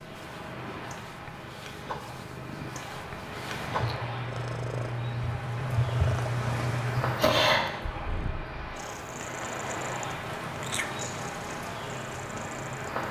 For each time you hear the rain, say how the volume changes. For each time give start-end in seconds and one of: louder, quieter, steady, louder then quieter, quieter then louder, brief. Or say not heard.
0.0-13.0 louder then quieter.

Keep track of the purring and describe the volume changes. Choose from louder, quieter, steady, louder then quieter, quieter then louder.
louder then quieter.